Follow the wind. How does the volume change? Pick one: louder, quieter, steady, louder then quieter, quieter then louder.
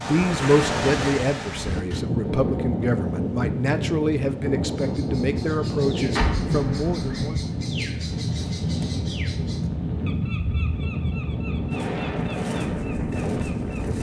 steady.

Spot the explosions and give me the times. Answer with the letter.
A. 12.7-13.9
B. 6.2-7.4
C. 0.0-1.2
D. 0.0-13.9
B.